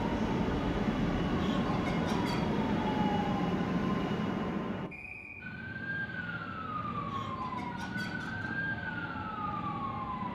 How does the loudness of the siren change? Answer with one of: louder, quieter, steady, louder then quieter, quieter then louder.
steady.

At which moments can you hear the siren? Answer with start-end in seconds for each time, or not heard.
5.4-10.2.